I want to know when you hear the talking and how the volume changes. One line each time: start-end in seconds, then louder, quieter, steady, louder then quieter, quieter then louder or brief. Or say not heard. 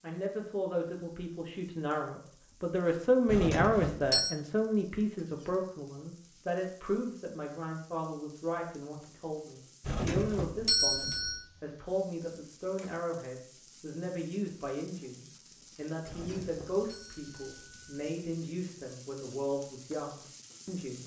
0.0-21.0 quieter.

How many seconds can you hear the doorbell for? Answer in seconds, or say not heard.
5 s.